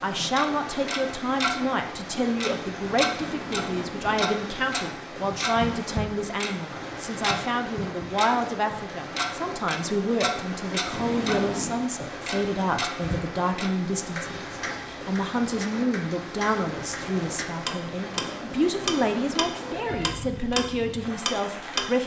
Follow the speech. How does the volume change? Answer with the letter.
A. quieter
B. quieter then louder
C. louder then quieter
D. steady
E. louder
D.